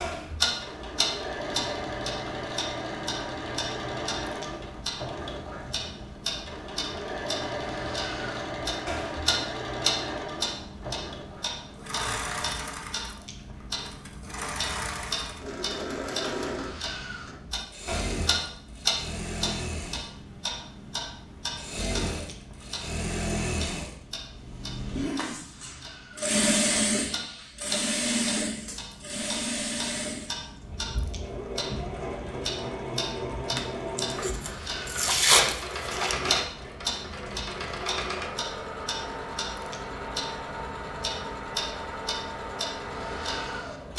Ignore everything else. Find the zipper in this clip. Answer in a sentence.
The zipper can be heard from 35.0 to 36.5 s.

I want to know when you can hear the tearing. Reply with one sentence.
The tearing can be heard from 33.5 to 36.1 s.